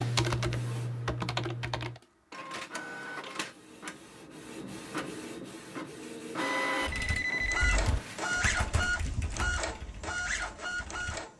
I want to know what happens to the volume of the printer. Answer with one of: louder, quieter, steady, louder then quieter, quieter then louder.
louder.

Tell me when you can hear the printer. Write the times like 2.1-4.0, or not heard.
0.0-11.3.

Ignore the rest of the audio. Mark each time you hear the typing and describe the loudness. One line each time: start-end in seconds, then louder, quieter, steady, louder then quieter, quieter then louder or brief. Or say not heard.
0.0-2.0 brief
6.8-11.3 quieter.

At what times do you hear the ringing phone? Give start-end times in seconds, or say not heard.
6.9-8.4.